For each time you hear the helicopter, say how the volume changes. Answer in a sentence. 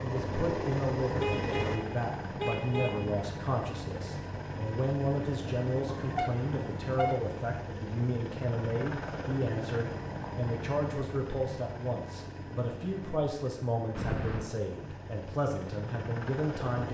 You can hear the helicopter from 0.0 to 16.8 s, getting quieter.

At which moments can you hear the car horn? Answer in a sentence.
The car horn can be heard from 1.2 to 3.1 s, from 5.8 to 7.2 s and from 13.9 to 14.6 s.